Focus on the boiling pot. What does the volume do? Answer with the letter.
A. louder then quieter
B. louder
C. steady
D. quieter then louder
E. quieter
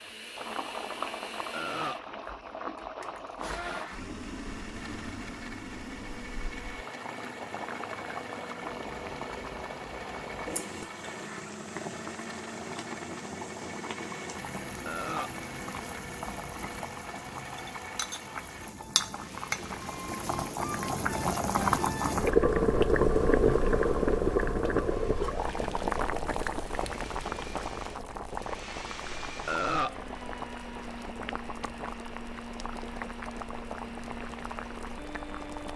A.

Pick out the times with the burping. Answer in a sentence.
The burping can be heard from 1.5 to 2.0 s, from 14.8 to 15.3 s and from 29.4 to 29.9 s.